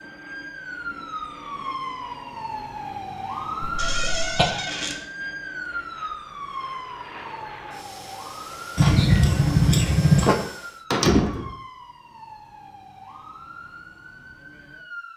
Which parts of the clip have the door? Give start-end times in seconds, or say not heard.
3.8-5.0, 10.9-11.6.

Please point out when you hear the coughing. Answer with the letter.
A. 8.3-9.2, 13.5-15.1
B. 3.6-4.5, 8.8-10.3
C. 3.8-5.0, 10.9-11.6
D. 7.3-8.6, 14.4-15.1
B.